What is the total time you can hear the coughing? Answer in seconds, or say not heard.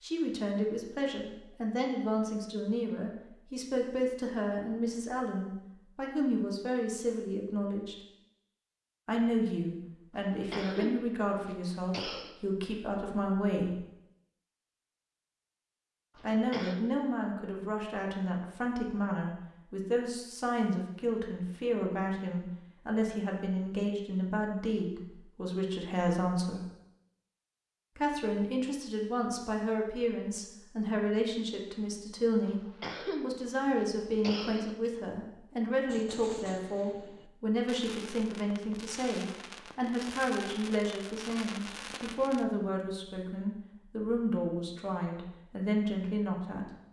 5 s.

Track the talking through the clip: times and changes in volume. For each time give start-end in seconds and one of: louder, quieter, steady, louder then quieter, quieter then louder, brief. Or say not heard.
0.0-8.0 steady
9.1-13.8 steady
16.2-26.6 steady
27.9-46.6 steady.